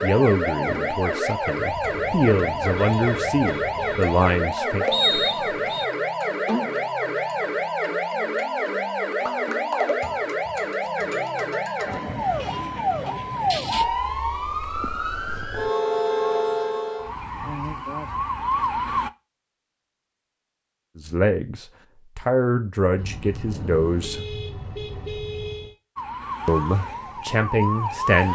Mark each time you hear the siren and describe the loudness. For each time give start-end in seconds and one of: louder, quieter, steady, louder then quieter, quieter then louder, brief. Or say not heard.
0.0-19.1 steady
25.9-28.3 brief.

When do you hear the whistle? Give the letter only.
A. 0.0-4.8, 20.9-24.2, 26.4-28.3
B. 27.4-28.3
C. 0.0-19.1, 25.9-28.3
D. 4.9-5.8
D.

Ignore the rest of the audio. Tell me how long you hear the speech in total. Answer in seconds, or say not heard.
10 s.